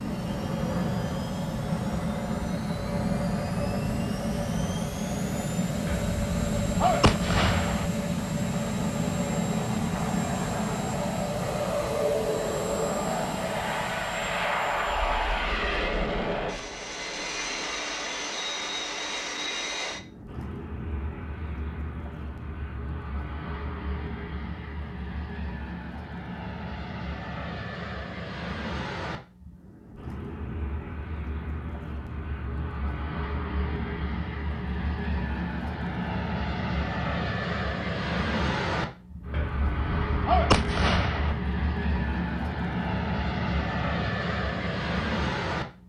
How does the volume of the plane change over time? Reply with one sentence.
The loudness of the plane goes down, then up.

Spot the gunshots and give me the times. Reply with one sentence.
The gunshots can be heard from 5.8 to 7.9 s and from 39.3 to 41.4 s.